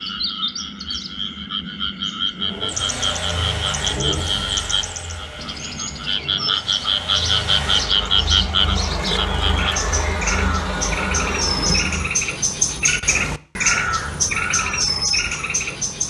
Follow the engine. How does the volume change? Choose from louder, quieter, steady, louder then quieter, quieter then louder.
quieter then louder.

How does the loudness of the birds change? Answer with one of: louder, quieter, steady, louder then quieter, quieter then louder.
louder.